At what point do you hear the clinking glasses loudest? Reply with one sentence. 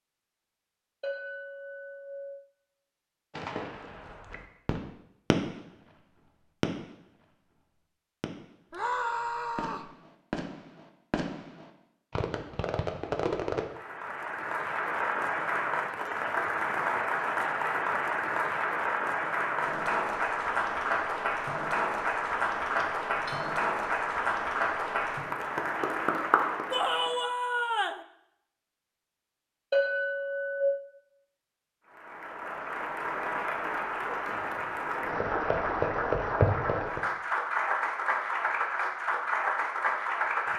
The loudest moment of the clinking glasses is at 30 seconds.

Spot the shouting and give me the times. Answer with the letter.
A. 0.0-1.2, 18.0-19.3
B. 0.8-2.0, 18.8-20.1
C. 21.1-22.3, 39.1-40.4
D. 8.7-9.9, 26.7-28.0
D.